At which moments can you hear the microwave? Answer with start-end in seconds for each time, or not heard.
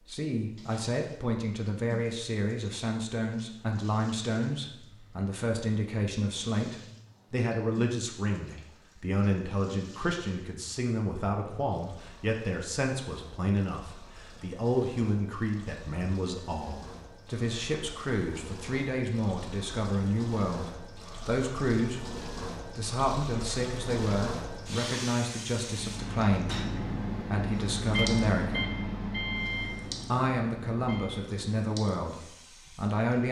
25.6-31.2.